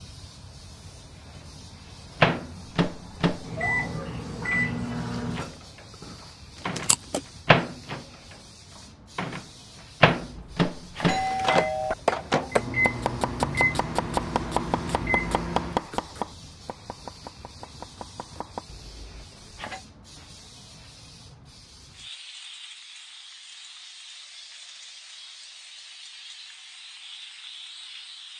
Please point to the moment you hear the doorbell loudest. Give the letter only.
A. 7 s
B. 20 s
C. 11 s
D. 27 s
C.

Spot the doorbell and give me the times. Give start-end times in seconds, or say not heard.
10.2-11.9, 18.6-19.8.